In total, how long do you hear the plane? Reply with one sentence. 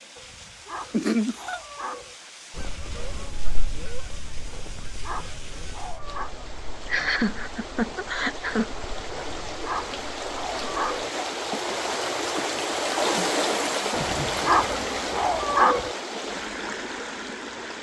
The plane can't be heard in this clip.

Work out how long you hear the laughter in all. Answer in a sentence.
You can hear the laughter for 3 seconds altogether.